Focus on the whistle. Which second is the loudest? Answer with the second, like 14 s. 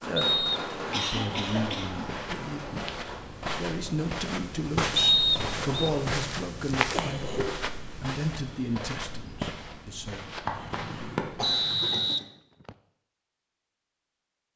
5 s.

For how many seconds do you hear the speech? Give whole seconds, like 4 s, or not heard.
10 s.